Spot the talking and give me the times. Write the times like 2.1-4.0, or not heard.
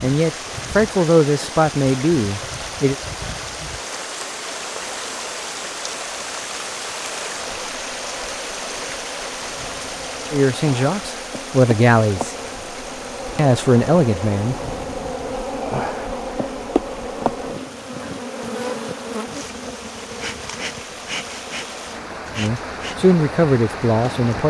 0.0-3.0, 10.3-12.3, 13.3-14.6, 22.4-24.4.